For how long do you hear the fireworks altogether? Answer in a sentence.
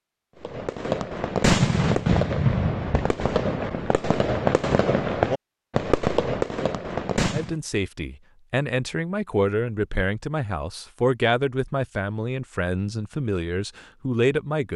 You can hear the fireworks for 7 seconds altogether.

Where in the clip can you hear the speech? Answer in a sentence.
The speech can be heard from 7.3 to 14.7 s.